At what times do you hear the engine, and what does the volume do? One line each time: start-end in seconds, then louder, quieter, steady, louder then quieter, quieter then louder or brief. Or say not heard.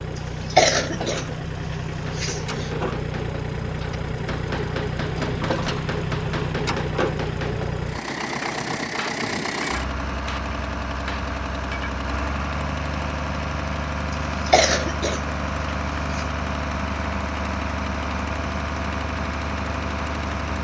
0.0-20.6 steady.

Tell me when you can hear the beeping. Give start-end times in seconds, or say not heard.
not heard.